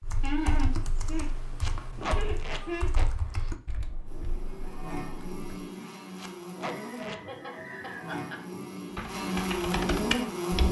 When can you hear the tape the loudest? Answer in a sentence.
The loudest moment of the tape is at 2 seconds.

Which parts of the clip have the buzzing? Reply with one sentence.
The buzzing can be heard from 4.0 to 10.6 s.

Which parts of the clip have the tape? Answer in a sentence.
You can hear the tape from 1.6 to 3.1 s and from 6.2 to 7.2 s.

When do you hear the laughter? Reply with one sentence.
The laughter can be heard from 0.2 to 2.9 s and from 6.5 to 8.4 s.